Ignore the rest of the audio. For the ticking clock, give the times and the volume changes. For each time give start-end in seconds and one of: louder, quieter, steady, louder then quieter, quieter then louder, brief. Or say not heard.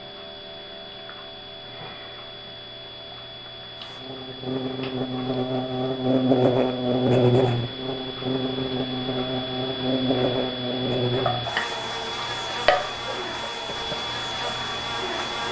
0.0-15.4 louder.